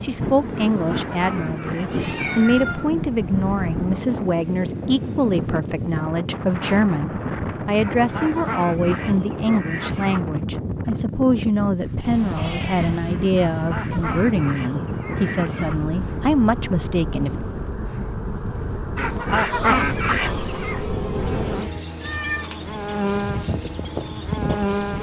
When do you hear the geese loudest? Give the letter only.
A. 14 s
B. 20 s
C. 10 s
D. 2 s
B.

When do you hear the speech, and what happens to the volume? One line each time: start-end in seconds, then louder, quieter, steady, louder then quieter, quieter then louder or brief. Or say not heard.
0.0-17.3 steady.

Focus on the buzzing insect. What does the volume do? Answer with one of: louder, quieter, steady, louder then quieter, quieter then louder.
louder.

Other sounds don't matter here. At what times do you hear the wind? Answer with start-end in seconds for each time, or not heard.
0.0-24.9.